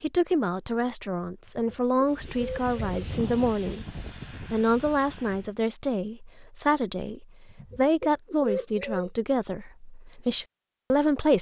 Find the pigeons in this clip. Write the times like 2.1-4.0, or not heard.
1.4-3.0, 7.5-9.1.